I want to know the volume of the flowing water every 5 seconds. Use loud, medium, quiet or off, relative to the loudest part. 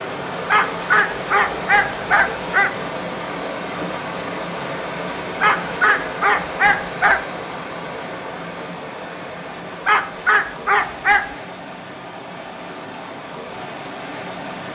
loud, loud, medium.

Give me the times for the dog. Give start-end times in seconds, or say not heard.
0.5-2.7, 5.4-7.2, 9.8-11.3.